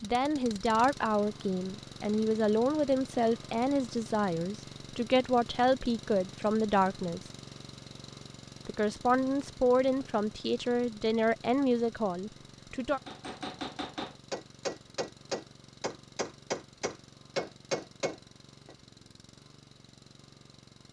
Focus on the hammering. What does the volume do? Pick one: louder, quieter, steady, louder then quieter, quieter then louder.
louder.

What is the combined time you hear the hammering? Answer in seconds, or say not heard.
6 s.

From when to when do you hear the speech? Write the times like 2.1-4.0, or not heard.
0.0-7.2, 8.7-13.0.